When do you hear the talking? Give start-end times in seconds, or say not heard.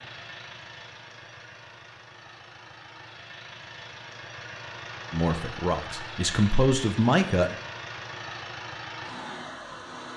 5.1-7.5.